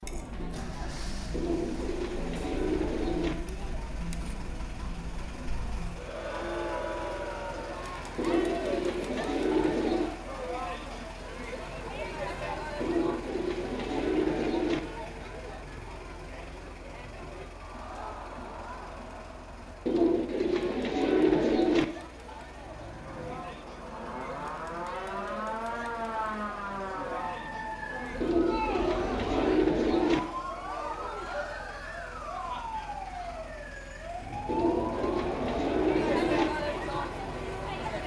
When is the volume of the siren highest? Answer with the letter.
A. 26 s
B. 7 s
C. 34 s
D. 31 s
A.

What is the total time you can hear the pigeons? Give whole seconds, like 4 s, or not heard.
12 s.